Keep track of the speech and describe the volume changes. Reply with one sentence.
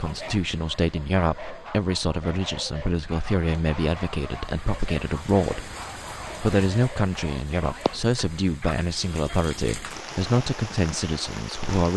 The volume of the speech stays about the same.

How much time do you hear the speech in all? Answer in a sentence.
The speech can be heard for 11 seconds in total.